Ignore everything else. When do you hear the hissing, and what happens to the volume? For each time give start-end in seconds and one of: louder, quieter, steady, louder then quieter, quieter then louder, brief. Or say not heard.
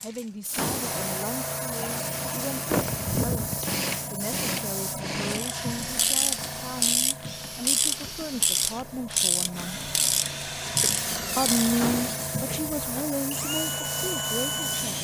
0.0-14.9 quieter then louder.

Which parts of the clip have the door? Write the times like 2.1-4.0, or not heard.
0.5-1.0, 11.8-12.3.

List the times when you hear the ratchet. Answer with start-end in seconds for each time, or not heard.
5.2-11.8.